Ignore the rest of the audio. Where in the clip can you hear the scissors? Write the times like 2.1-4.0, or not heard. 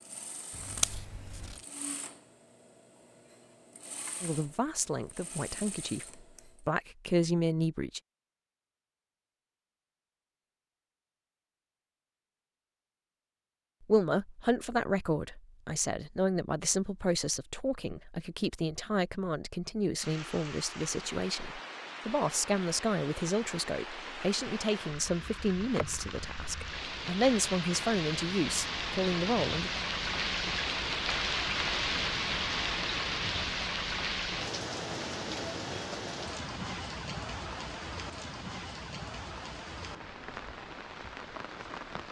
0.5-1.6.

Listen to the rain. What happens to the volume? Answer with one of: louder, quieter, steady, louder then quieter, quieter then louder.
louder then quieter.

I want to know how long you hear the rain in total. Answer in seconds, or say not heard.
22 s.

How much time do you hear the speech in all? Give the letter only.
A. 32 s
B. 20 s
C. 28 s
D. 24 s
B.